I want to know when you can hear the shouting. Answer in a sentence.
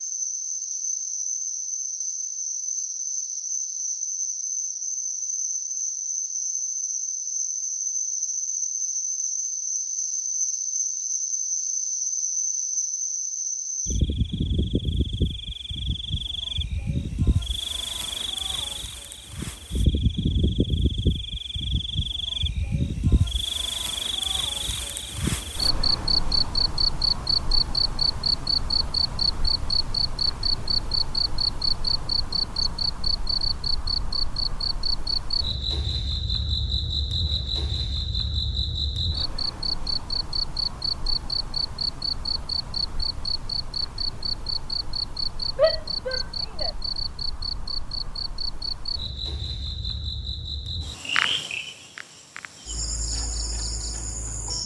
The shouting can be heard from 45.5 to 46.8 s.